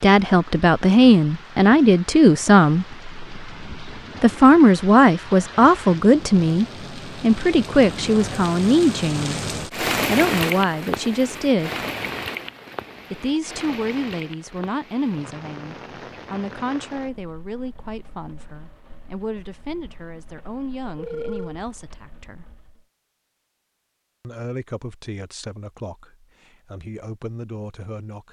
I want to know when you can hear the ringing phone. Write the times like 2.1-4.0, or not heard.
20.9-21.6.